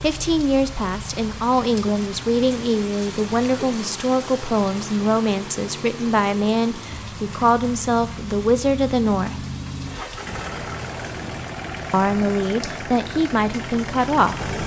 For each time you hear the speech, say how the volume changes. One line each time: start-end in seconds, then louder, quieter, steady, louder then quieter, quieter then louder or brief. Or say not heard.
0.0-9.4 steady
11.9-14.4 brief.